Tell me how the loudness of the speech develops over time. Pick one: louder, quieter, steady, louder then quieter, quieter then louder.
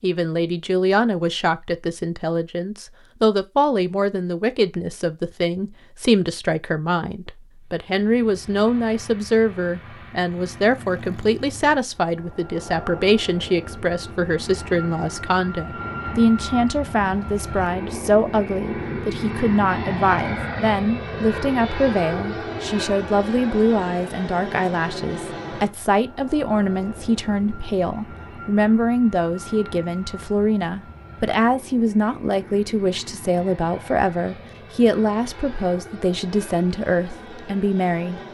steady.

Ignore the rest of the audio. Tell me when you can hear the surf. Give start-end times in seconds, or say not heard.
not heard.